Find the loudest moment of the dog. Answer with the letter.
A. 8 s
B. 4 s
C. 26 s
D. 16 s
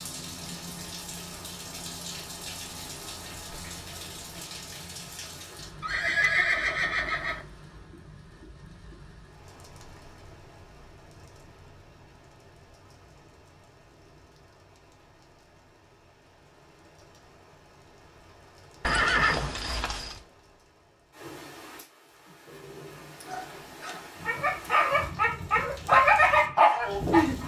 C.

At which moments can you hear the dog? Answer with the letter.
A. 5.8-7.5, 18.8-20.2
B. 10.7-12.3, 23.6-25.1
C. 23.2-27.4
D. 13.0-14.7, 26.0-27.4
C.